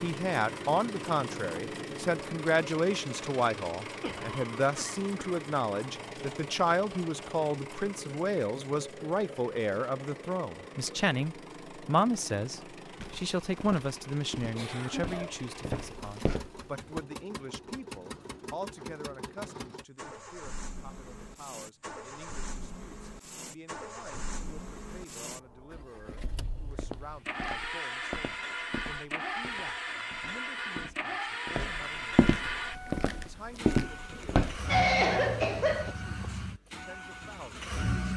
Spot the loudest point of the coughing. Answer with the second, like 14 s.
35 s.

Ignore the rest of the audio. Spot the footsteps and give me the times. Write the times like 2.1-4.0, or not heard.
13.0-17.0, 25.9-34.6.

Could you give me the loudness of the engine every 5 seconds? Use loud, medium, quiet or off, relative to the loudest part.
loud, medium, medium, medium, medium, loud, loud, loud.